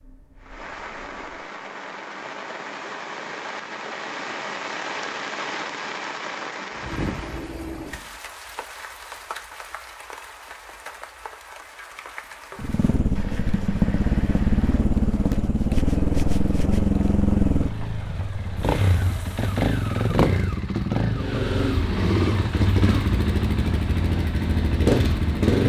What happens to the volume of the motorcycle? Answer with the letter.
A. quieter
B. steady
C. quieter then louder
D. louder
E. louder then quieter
B.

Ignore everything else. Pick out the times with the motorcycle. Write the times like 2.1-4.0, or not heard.
12.6-25.6.